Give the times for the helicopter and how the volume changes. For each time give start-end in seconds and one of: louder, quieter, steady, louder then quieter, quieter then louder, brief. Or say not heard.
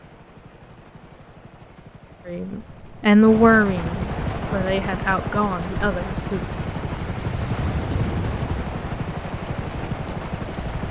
0.0-10.8 louder.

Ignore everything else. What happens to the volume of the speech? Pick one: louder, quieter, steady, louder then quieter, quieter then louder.
quieter.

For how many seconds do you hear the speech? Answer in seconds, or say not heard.
4 s.